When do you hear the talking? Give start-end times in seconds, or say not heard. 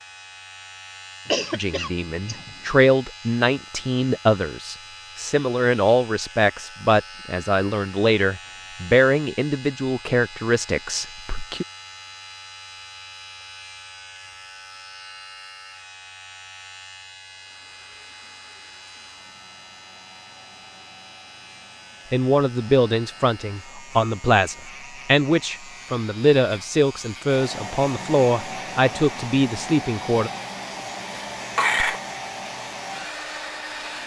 1.5-11.7, 22.1-30.3.